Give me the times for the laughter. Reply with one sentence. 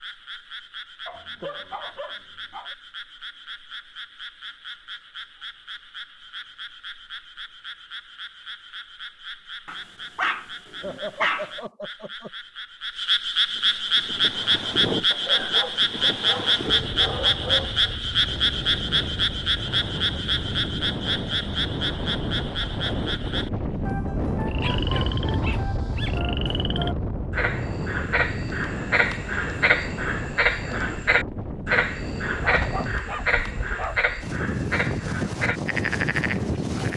You can hear the laughter from 10.8 to 12.3 s.